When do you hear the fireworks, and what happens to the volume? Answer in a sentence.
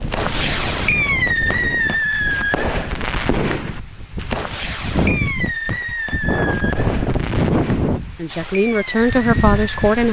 The fireworks can be heard from 0.0 to 9.8 s, getting quieter.